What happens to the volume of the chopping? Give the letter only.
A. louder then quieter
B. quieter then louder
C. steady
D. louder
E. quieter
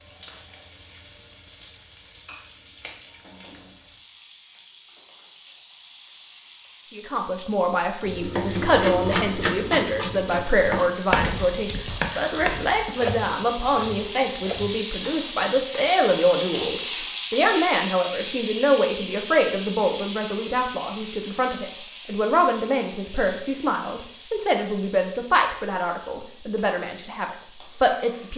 E.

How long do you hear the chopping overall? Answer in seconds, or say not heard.
7 s.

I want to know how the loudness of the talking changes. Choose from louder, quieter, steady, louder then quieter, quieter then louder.
steady.